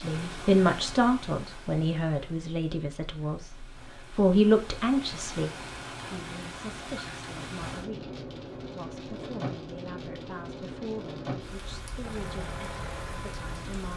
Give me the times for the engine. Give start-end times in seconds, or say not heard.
12.0-13.8.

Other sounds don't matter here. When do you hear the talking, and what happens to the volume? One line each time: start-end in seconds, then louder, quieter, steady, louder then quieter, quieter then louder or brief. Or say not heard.
0.0-13.9 quieter.